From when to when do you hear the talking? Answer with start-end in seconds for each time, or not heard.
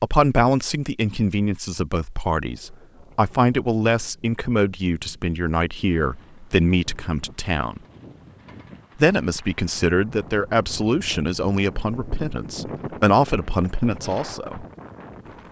0.0-7.8, 8.9-14.7.